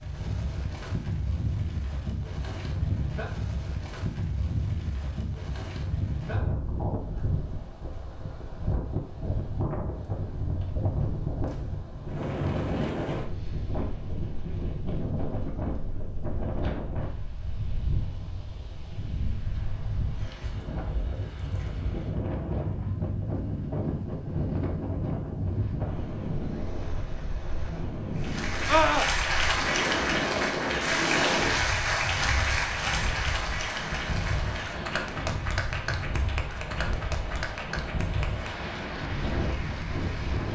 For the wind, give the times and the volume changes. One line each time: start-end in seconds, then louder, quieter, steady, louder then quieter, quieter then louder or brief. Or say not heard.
0.0-40.5 steady.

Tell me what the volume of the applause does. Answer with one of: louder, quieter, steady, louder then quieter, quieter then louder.
quieter.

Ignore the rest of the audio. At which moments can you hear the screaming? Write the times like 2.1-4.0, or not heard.
28.6-29.1.